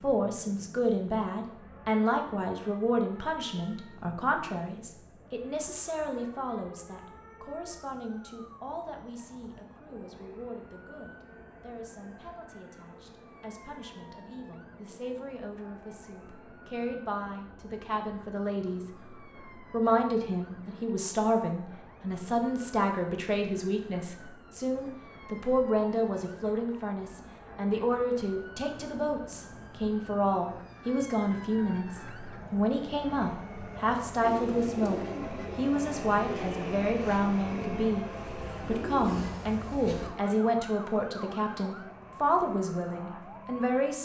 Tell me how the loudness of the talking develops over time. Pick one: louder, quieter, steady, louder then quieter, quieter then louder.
quieter then louder.